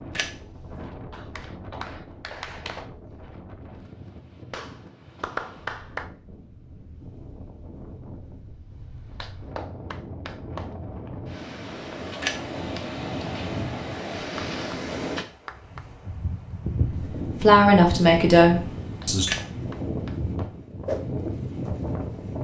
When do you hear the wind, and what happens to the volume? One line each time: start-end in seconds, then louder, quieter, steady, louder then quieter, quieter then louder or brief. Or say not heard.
0.0-22.3 louder.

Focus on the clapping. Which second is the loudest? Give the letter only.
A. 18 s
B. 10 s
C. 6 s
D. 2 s
C.